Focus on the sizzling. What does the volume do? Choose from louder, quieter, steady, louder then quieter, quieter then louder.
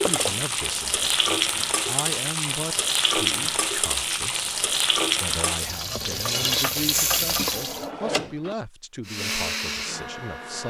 steady.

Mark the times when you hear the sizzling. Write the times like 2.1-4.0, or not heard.
0.0-7.9.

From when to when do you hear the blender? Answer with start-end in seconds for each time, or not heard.
9.1-10.6.